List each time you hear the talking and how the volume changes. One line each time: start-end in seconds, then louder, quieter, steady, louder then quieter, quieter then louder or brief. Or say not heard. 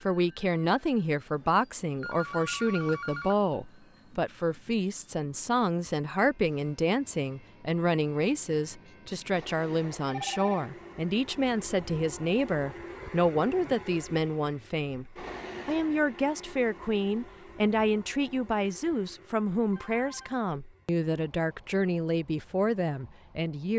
0.0-23.7 steady.